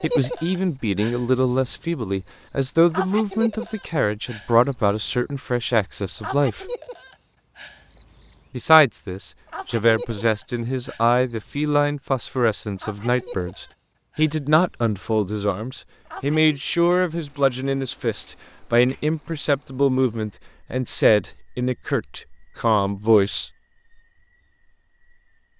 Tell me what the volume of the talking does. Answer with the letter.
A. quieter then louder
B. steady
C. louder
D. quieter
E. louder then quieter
B.